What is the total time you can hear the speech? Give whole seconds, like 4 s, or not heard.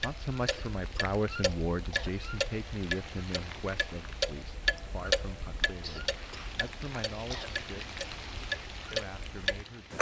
9 s.